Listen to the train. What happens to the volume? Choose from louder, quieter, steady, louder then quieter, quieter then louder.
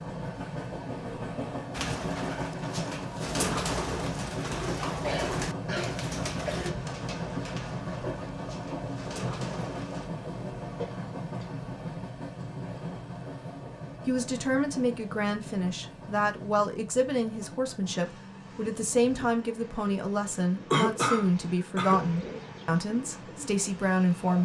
quieter.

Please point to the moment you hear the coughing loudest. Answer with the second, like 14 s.
21 s.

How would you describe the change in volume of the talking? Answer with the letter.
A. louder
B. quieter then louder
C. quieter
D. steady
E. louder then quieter
D.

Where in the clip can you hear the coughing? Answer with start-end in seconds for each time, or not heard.
5.0-6.7, 10.7-11.7, 20.7-22.0.